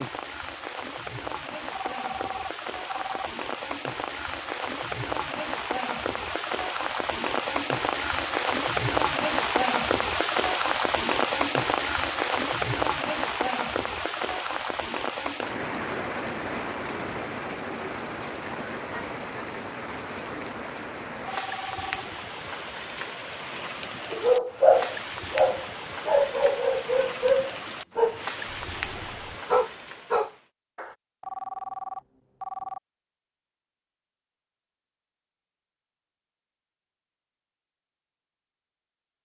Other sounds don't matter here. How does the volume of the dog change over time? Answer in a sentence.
The loudness of the dog goes down, then up.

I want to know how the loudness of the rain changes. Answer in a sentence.
The loudness of the rain goes up, then down.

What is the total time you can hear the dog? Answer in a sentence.
You can hear the dog for 7 seconds altogether.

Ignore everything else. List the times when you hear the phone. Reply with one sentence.
You can hear the phone from 1.7 to 3.3 s, from 21.2 to 22.0 s and from 31.2 to 32.8 s.